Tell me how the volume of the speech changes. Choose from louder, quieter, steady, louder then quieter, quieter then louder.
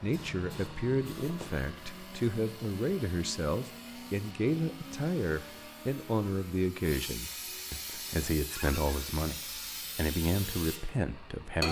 steady.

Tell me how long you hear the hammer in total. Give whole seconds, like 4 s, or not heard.
not heard.